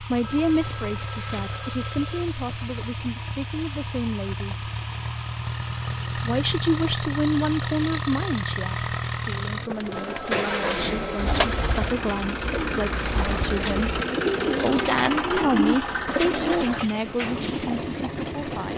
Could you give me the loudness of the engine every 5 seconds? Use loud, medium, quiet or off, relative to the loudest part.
medium, loud, loud, loud.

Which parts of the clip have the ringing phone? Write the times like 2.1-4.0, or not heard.
0.2-2.2, 9.9-11.9.